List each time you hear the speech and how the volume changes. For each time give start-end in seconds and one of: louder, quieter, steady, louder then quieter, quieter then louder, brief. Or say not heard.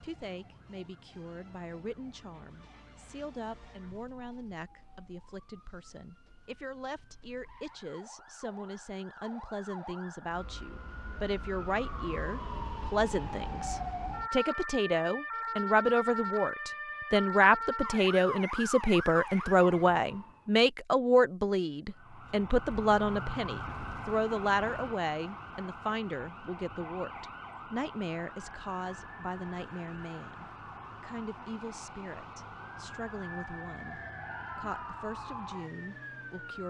0.0-36.6 louder then quieter.